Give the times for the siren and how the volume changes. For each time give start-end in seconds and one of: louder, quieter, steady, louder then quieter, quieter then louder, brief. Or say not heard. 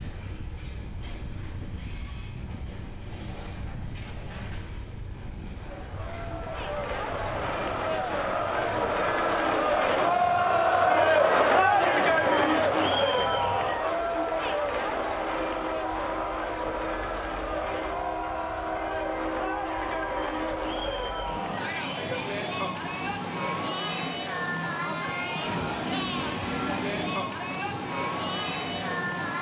not heard.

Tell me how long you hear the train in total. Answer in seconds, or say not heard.
29 s.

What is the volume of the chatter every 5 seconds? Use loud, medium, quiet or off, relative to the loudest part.
off, medium, loud, medium, medium, medium.